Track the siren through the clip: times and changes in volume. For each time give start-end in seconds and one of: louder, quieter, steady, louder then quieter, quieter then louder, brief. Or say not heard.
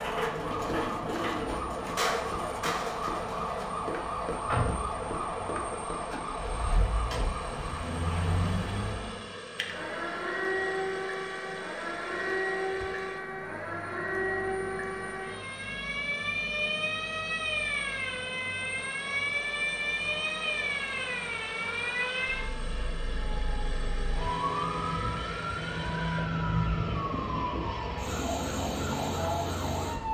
0.0-30.0 steady.